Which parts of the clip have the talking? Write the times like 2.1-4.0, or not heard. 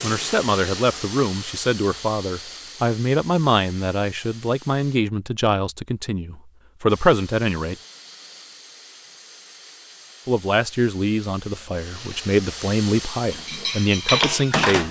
0.0-7.8, 10.2-14.8.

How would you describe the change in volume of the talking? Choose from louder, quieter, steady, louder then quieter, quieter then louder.
steady.